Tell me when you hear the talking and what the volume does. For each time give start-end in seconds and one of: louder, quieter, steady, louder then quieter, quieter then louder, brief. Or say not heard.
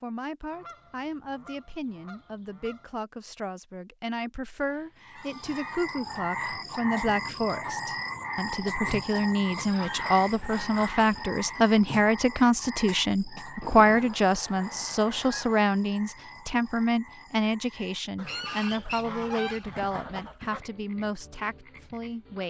0.0-22.4 louder then quieter.